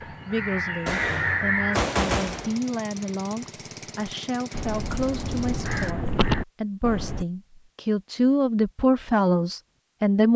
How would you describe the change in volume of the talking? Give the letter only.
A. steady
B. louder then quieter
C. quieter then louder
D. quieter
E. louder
E.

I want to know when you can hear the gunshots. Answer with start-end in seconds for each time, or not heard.
0.8-2.6.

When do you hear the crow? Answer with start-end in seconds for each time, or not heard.
0.0-1.8, 4.5-7.2.